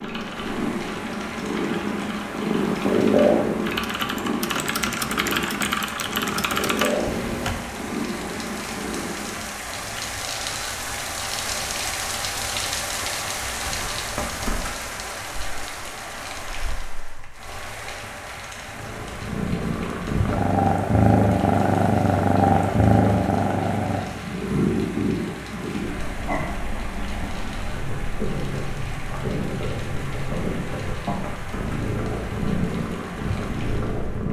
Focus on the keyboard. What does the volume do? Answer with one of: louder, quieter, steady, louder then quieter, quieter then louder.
louder.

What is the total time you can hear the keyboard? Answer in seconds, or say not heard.
8 s.